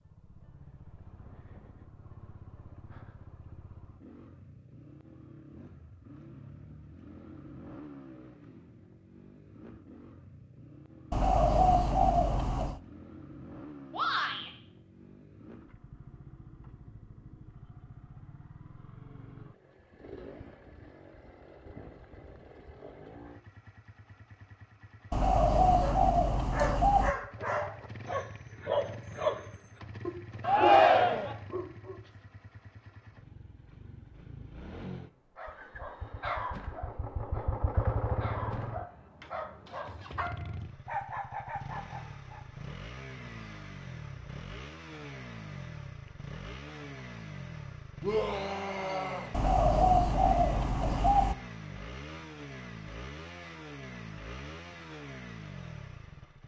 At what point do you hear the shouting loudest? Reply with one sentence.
The volume of the shouting peaks at 31 seconds.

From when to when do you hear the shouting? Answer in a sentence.
You can hear the shouting from 13.9 to 14.5 s, from 30.4 to 31.4 s and from 48.0 to 49.3 s.